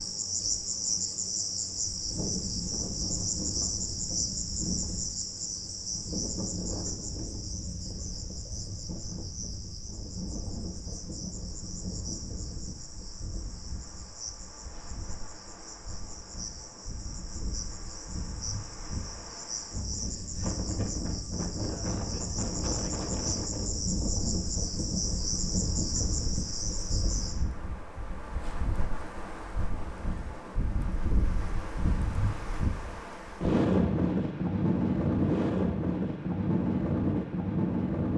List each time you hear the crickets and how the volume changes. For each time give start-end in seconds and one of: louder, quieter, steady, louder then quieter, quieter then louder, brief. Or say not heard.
0.0-27.4 quieter then louder.